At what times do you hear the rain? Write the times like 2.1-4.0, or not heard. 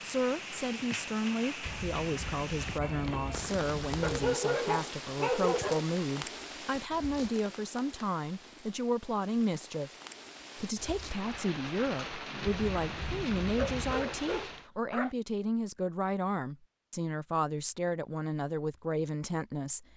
0.0-14.7.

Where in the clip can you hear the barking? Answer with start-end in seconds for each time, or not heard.
4.0-5.8, 13.6-15.2.